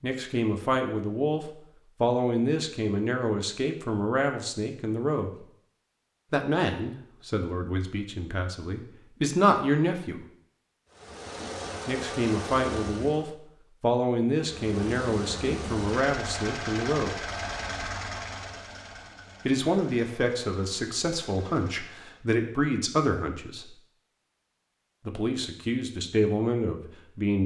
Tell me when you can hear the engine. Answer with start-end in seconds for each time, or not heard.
10.9-13.3, 14.3-22.2.